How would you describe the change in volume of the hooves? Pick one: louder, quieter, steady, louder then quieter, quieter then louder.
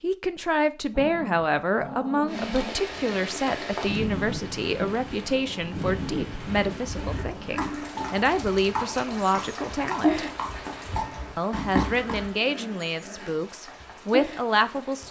louder.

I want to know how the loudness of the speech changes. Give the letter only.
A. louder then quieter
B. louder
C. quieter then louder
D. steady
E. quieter
D.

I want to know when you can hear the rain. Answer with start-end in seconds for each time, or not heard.
2.2-15.0.